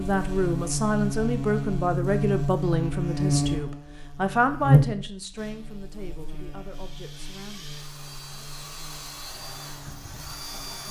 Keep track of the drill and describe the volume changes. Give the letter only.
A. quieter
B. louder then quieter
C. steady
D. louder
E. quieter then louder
D.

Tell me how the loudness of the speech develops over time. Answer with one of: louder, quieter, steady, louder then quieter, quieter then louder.
quieter.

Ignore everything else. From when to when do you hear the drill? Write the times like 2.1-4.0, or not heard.
5.3-10.8.